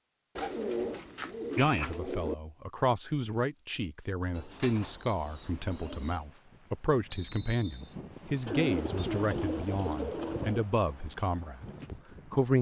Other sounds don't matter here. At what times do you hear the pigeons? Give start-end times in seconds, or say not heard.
0.3-2.4, 4.3-6.2, 8.4-10.7.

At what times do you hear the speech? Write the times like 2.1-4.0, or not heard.
1.6-12.5.